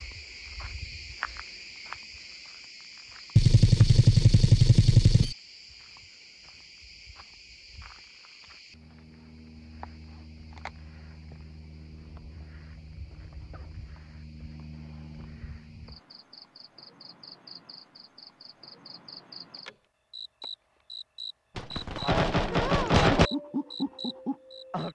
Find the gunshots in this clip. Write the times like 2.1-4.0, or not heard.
3.4-5.3, 21.6-23.3.